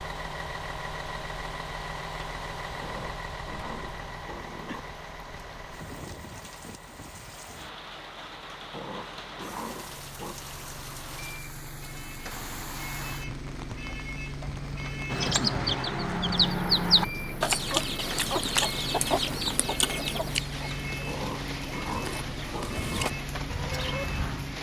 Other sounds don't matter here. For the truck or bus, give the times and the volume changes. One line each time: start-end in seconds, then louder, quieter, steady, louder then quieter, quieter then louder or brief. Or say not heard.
0.0-24.5 quieter then louder.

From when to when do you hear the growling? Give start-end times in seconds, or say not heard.
2.8-4.8, 8.7-10.3, 21.1-23.1.